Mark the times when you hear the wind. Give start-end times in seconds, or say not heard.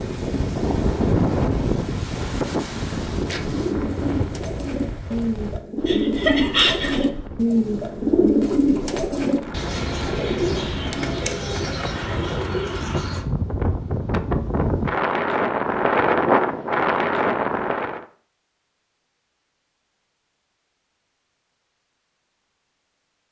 0.0-18.1.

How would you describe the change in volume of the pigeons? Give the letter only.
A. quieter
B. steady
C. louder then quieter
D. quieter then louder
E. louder
C.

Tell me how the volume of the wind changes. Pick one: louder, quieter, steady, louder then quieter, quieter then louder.
quieter then louder.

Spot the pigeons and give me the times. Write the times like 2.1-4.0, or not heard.
3.5-13.2.